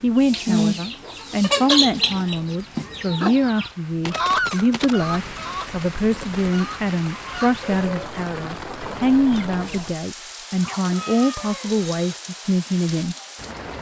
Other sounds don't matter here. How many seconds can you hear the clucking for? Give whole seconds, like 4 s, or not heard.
10 s.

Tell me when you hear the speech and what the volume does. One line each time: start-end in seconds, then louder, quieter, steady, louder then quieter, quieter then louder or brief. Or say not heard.
0.0-13.2 steady.